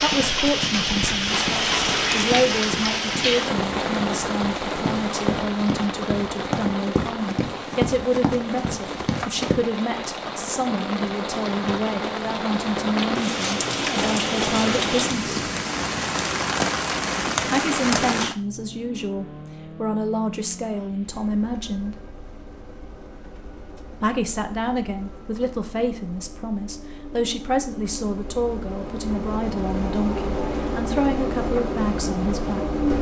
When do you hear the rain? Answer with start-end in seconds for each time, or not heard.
0.0-18.4.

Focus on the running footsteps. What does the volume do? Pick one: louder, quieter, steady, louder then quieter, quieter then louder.
louder.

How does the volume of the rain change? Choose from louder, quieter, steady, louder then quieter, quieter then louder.
quieter then louder.